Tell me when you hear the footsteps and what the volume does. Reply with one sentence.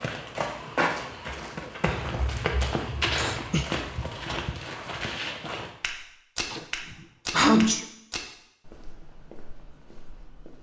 The footsteps can be heard from 0.0 to 10.5 s, getting quieter.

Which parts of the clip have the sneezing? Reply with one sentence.
You can hear the sneezing from 1.9 to 3.6 s and from 6.5 to 7.8 s.